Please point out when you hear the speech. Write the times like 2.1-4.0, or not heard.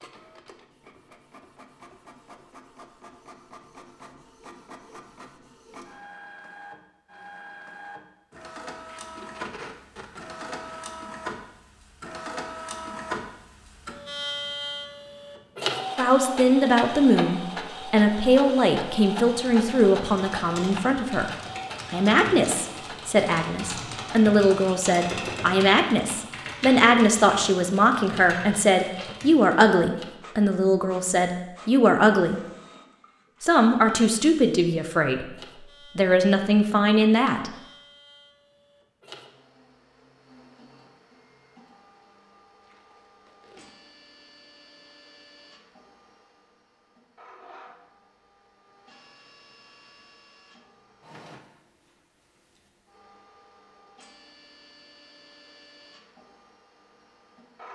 15.9-21.3, 21.9-32.4, 33.4-37.5.